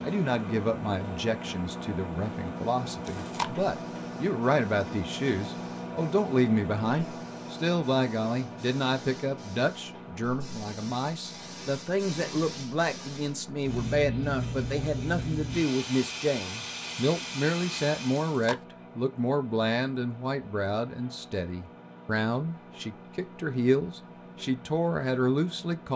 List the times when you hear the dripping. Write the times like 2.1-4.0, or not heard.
not heard.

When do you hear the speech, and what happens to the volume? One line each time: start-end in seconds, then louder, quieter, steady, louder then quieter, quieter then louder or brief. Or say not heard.
0.0-25.9 steady.